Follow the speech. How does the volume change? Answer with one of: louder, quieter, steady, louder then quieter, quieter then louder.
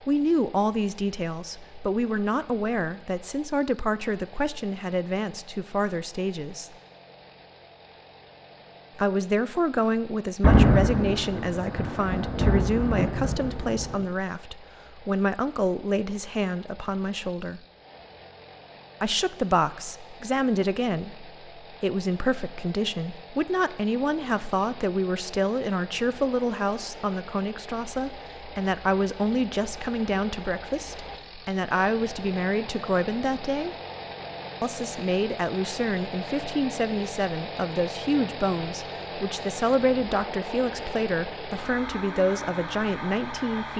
steady.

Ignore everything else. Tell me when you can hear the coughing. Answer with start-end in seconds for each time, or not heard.
not heard.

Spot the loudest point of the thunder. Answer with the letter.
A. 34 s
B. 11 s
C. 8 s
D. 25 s
B.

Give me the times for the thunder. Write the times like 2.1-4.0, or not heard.
10.4-14.0.